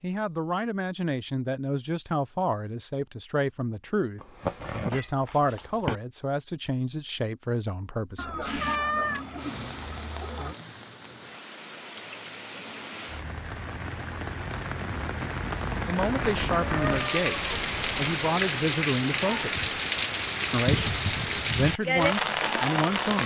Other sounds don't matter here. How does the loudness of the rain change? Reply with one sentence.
The volume of the rain goes up.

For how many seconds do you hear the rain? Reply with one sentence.
The rain can be heard for 15 seconds in total.